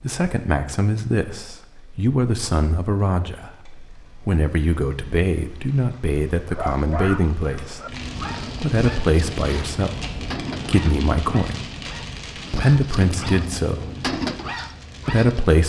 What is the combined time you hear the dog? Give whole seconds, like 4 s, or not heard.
9 s.